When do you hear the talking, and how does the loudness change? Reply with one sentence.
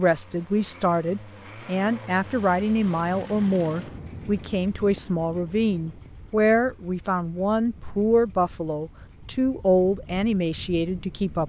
You can hear the talking from 0.0 to 11.4 s, at a steady volume.